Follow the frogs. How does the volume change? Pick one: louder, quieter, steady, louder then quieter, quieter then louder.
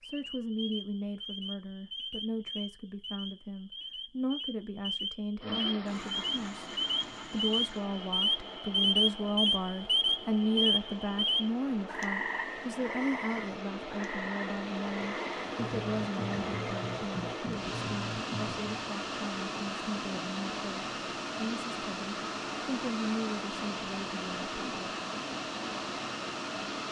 louder then quieter.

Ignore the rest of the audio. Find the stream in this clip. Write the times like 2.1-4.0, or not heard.
5.4-26.8.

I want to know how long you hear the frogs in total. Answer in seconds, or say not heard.
19 s.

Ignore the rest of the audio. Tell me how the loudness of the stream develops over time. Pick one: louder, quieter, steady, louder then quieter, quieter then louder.
louder.